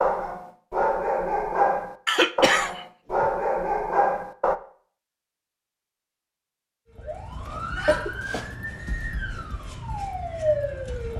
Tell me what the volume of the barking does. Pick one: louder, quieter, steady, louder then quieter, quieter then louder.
steady.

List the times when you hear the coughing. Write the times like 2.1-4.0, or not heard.
2.0-3.3, 7.8-9.1.